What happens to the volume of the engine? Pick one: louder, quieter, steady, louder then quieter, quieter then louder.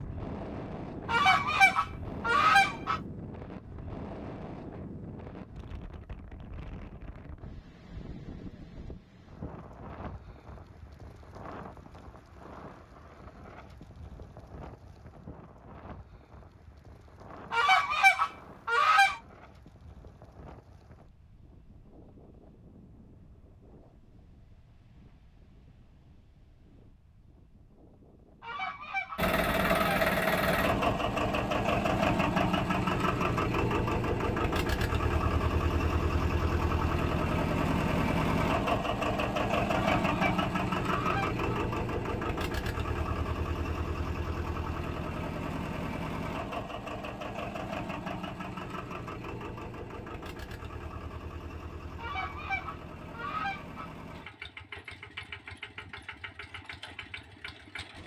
quieter.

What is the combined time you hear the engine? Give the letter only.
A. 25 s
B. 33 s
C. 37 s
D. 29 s
D.